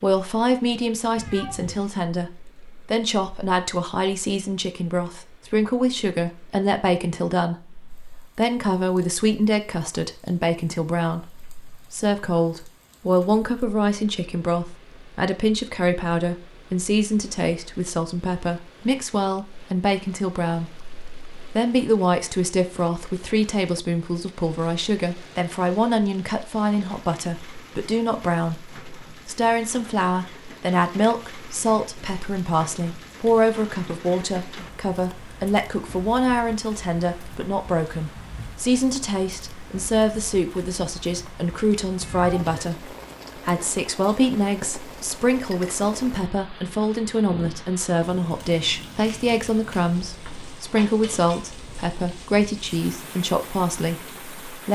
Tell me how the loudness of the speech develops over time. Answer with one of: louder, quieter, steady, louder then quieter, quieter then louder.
steady.